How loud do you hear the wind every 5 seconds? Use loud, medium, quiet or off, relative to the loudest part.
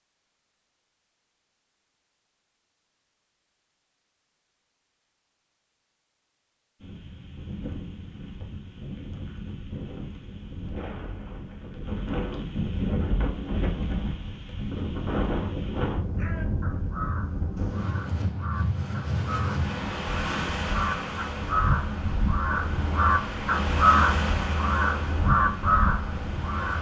off, medium, loud, loud, loud, loud.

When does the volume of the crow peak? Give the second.
24 s.